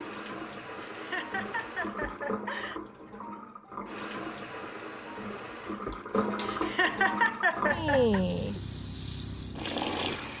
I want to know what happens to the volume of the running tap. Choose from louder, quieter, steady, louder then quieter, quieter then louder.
louder.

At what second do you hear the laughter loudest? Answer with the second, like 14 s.
7 s.